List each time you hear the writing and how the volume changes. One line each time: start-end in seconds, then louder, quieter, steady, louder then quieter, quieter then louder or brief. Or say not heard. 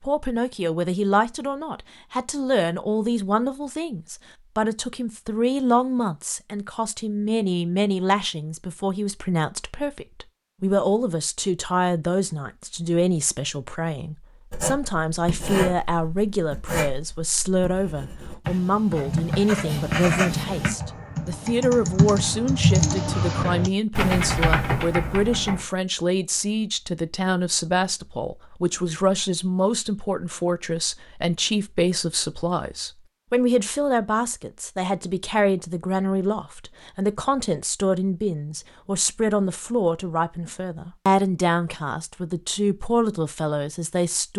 14.5-20.7 quieter then louder.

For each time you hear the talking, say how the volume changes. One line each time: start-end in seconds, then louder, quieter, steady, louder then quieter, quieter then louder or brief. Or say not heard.
0.0-44.3 steady.